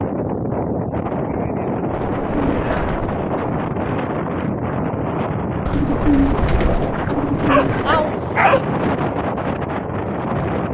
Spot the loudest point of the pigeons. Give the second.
6 s.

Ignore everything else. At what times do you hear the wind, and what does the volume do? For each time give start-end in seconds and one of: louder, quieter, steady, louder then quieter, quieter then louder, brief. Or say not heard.
0.0-10.6 steady.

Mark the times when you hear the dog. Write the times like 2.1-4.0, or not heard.
2.1-3.6, 7.3-8.7.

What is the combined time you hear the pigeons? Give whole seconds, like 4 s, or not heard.
4 s.